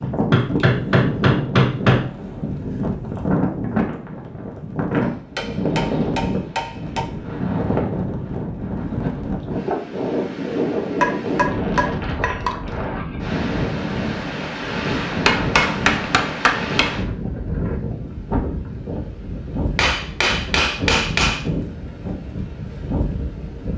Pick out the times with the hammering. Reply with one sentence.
The hammering can be heard from 0.0 to 2.0 s, from 5.3 to 7.0 s, from 11.0 to 12.6 s, from 15.2 to 16.9 s and from 19.8 to 21.4 s.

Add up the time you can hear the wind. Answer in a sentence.
The wind can be heard for 24 seconds in total.